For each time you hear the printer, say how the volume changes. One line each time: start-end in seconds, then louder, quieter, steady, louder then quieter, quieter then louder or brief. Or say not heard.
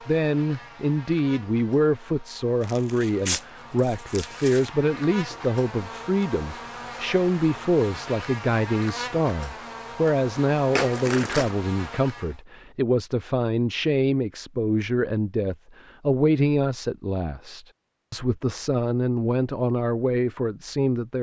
not heard.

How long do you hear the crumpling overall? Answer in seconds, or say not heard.
3 s.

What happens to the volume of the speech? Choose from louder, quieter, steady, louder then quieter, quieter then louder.
steady.